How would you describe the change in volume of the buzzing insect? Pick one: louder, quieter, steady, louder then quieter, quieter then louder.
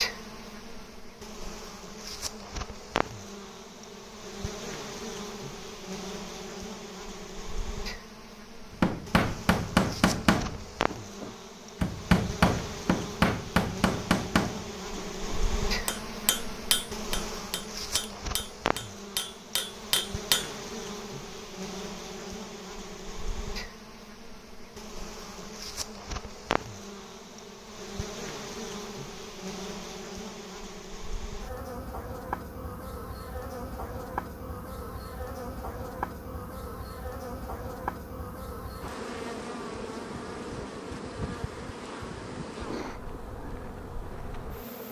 steady.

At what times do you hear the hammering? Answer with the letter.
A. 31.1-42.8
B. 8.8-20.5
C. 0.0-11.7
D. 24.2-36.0
B.